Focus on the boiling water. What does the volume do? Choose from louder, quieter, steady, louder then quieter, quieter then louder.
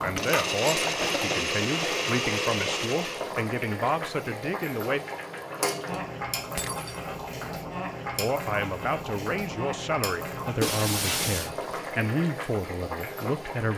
steady.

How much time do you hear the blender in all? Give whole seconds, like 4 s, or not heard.
3 s.